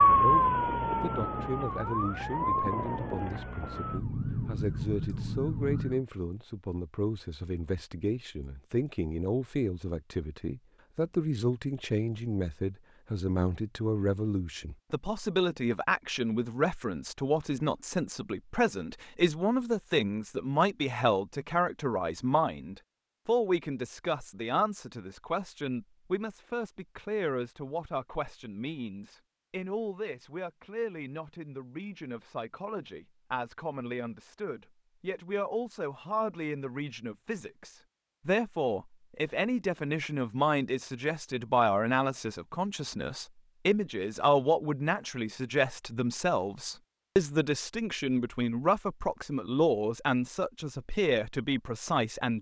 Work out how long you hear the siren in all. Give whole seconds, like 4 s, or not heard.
6 s.